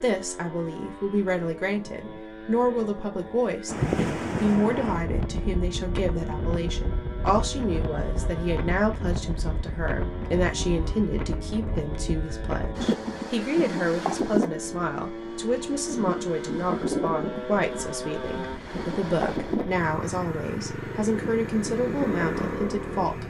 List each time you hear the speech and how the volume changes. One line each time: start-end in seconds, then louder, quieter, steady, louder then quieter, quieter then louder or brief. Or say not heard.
0.0-23.2 steady.